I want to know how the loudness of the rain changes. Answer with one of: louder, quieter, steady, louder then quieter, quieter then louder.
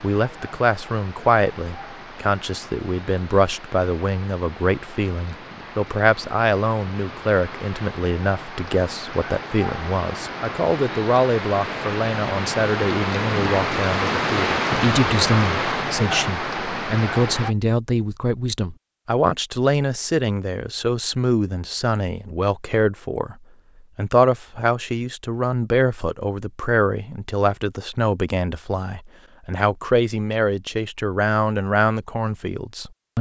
louder.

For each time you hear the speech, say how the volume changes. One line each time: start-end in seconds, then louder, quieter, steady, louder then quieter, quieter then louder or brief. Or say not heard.
0.0-23.4 steady
23.9-33.1 steady.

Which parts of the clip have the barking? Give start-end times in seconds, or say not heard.
not heard.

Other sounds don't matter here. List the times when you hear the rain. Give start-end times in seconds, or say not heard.
0.0-17.6.